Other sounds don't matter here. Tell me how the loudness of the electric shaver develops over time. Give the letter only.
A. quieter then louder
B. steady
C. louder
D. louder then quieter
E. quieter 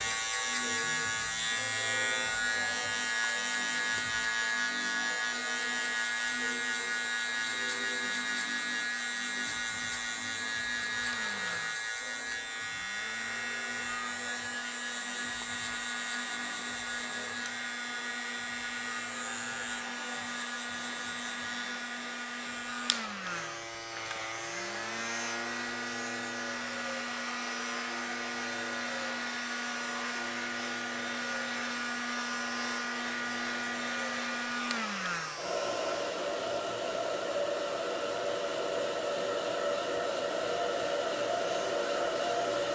E.